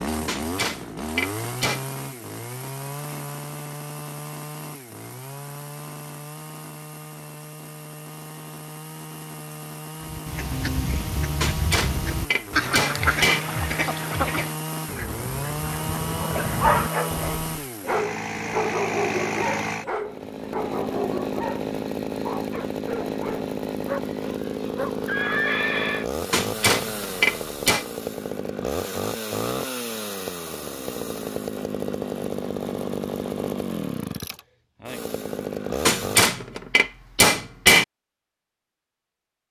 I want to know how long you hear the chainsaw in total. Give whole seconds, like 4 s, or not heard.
36 s.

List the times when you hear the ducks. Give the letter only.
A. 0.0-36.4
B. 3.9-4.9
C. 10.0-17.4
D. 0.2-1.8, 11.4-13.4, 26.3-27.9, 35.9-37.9
C.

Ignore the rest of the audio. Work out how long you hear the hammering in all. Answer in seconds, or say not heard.
7 s.